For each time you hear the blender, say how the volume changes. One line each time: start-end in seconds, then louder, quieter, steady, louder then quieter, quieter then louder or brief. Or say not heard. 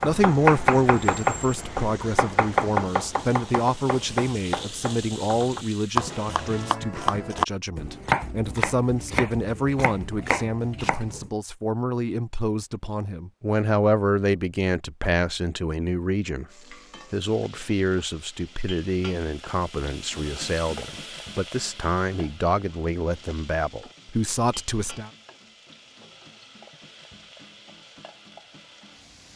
not heard.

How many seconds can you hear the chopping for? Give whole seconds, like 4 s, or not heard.
11 s.